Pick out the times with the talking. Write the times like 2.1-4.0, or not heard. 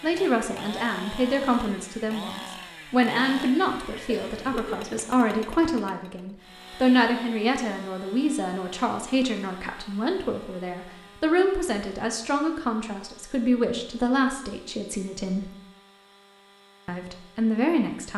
0.0-15.5, 16.9-18.1.